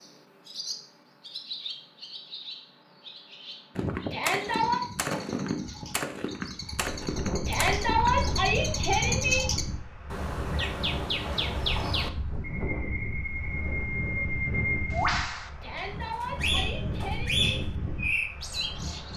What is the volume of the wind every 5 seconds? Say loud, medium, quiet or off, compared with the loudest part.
off, loud, loud, loud.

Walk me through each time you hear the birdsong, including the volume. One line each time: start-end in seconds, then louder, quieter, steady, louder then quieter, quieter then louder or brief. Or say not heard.
0.0-19.1 louder.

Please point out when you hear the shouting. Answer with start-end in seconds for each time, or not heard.
4.1-4.8, 7.5-9.4, 15.6-17.6.